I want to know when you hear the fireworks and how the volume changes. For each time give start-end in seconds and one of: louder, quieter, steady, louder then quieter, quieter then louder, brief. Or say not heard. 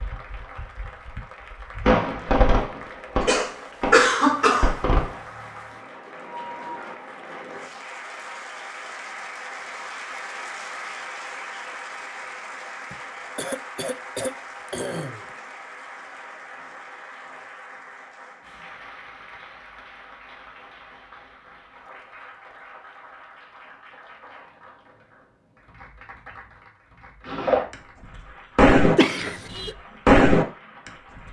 0.0-5.2 louder then quieter
27.2-27.8 brief
28.6-31.2 brief.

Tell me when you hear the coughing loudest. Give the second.
4 s.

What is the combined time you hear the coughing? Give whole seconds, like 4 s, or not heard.
5 s.